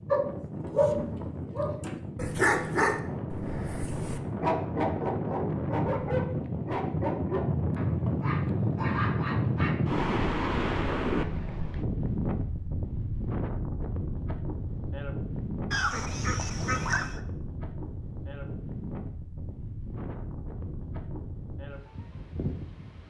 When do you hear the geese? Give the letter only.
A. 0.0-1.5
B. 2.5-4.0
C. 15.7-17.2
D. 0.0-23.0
C.